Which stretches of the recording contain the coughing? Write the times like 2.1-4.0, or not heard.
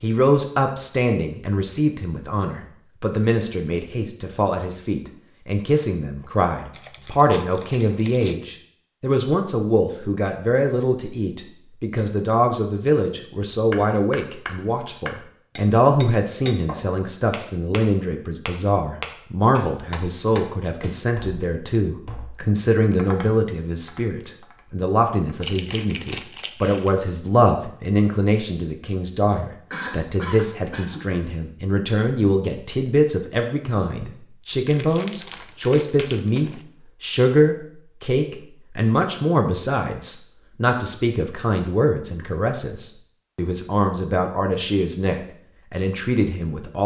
29.7-31.1.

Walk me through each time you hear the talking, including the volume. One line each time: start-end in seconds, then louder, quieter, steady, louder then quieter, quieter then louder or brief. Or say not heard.
0.0-46.8 steady.